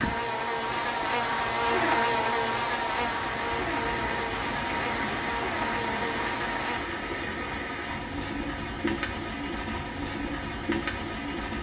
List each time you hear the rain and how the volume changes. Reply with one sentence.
The rain can be heard from 0.0 to 11.5 s, getting louder.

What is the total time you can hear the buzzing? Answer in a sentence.
The buzzing can be heard for 7 seconds in total.